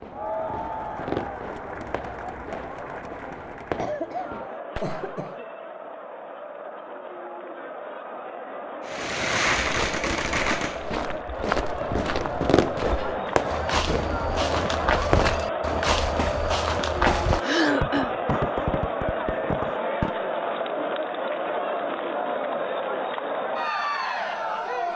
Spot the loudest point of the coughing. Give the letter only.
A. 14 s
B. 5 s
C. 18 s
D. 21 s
C.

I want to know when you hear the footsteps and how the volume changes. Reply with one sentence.
The footsteps can be heard from 9.6 to 17.4 s, getting louder.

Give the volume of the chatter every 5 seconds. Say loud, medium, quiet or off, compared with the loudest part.
medium, medium, loud, loud, loud.